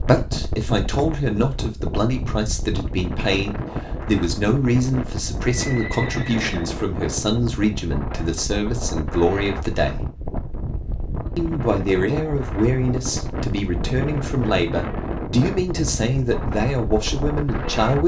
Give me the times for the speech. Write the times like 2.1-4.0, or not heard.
0.1-10.1, 11.3-18.0.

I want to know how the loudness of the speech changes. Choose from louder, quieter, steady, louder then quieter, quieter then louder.
steady.